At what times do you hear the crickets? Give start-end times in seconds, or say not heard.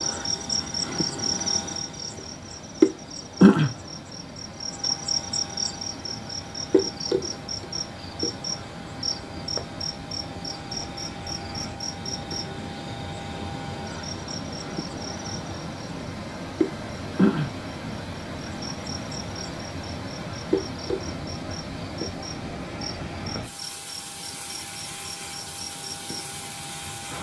0.0-27.1.